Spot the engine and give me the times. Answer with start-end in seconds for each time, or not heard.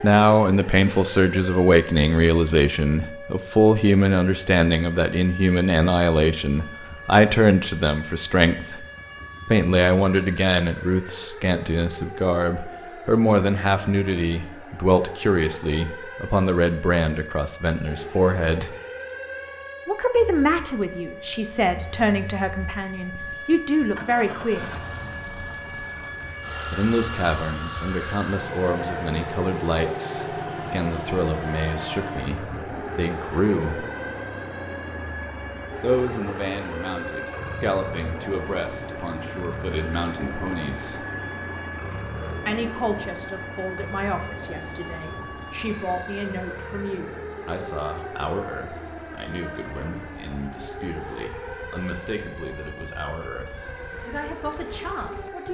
20.1-55.4.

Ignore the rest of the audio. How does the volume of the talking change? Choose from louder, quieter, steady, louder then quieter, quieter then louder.
quieter.